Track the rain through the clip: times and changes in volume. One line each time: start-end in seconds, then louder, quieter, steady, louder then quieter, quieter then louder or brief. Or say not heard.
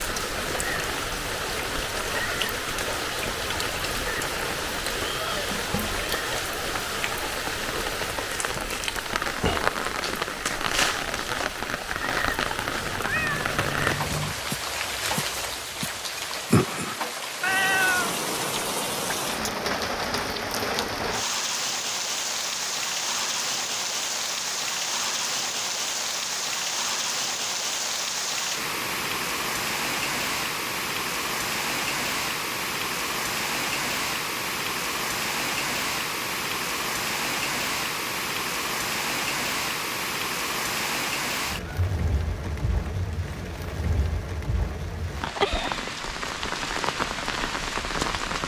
0.0-48.4 steady.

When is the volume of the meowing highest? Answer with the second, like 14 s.
18 s.